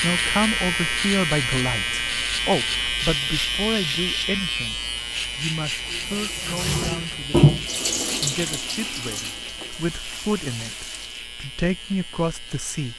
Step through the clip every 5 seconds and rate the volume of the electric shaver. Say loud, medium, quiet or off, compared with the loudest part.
loud, medium, quiet.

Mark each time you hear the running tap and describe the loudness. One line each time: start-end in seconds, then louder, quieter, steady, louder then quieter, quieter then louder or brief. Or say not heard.
5.8-11.2 louder then quieter.